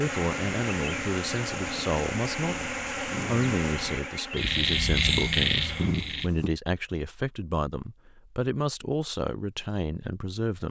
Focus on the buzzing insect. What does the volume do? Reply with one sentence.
The volume of the buzzing insect goes down.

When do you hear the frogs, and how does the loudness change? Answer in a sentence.
You can hear the frogs from 0.0 to 6.3 s, getting louder.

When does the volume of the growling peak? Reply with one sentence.
The volume of the growling peaks at 6 seconds.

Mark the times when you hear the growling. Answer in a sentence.
The growling can be heard from 2.5 to 3.5 s and from 5.8 to 6.5 s.